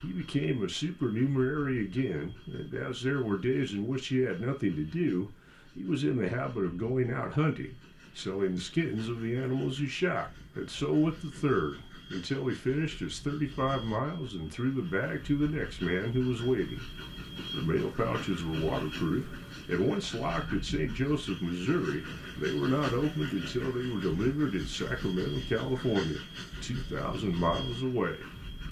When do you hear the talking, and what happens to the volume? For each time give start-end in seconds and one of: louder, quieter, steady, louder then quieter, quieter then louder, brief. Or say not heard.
0.0-16.9 steady
17.5-28.6 steady.